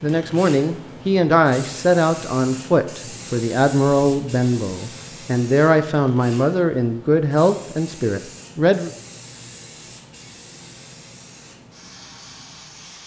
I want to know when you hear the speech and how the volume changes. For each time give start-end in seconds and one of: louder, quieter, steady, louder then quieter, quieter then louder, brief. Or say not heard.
0.0-8.9 steady.